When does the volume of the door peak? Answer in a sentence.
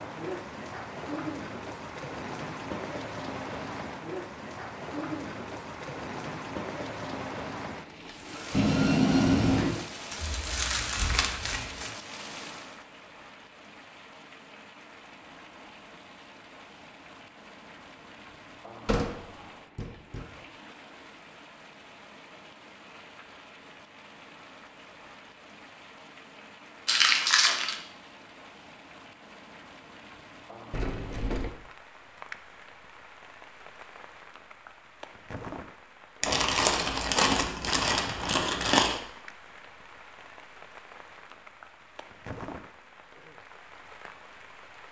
The loudest moment of the door is at 9 seconds.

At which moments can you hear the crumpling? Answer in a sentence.
You can hear the crumpling from 10.1 to 11.9 s, from 26.9 to 27.8 s and from 36.2 to 39.0 s.